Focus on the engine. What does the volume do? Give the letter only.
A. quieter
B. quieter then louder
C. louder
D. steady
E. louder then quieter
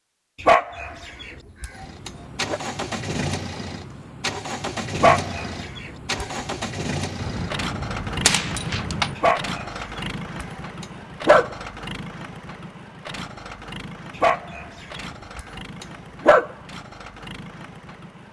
A.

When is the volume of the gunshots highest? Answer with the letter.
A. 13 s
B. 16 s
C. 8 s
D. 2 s
C.